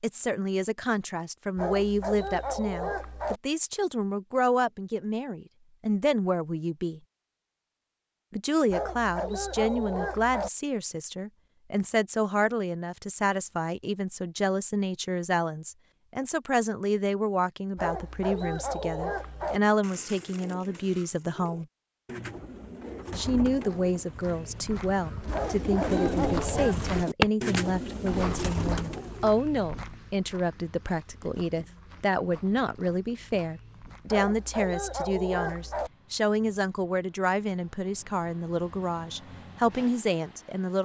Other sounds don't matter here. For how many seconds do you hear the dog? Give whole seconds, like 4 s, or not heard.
9 s.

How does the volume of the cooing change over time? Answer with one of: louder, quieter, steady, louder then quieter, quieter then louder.
louder.